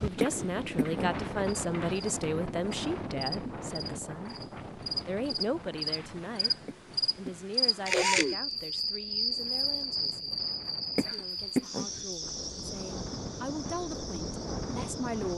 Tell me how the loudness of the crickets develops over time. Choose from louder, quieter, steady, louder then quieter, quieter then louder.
louder then quieter.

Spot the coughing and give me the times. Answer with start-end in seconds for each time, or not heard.
0.2-1.1, 6.7-7.3, 10.9-11.9.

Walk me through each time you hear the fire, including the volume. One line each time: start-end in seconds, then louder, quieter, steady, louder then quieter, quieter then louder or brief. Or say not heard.
not heard.